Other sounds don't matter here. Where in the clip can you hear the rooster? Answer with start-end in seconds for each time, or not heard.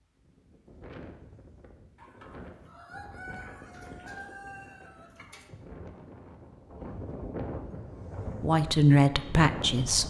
1.9-5.5.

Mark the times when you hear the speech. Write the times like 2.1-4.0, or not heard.
8.4-10.0.